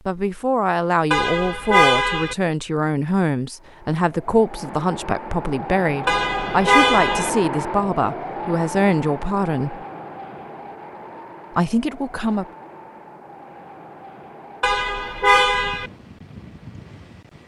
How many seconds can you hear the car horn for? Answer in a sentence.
You can hear the car horn for 4 seconds altogether.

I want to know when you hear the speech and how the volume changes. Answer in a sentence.
You can hear the speech from 0.1 to 9.8 s, at a steady volume; and briefly from 11.6 to 12.4 s.